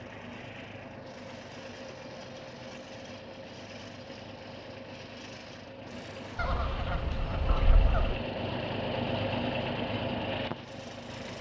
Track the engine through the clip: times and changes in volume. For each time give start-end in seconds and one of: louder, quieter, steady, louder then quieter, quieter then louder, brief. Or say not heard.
0.0-11.3 louder.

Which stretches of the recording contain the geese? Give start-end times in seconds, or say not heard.
6.3-8.2.